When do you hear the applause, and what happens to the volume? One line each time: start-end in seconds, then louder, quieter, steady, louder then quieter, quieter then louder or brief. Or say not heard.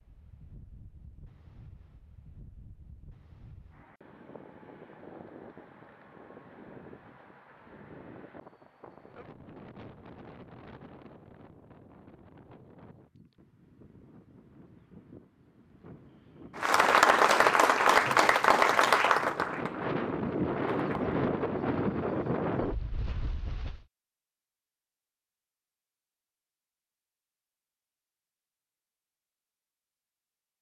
16.6-21.2 quieter.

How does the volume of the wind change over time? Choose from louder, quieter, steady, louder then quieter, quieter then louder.
louder.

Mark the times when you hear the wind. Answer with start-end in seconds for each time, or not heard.
0.0-23.9.